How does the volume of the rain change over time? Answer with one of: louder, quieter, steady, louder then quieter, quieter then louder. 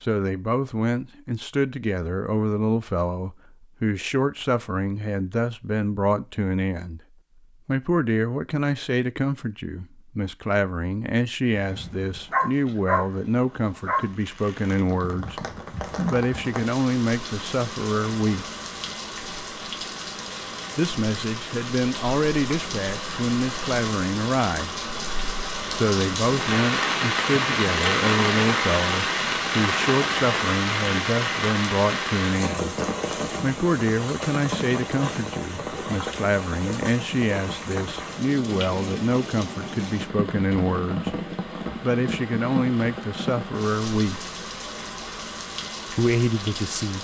louder then quieter.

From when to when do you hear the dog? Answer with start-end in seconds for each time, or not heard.
11.6-14.1.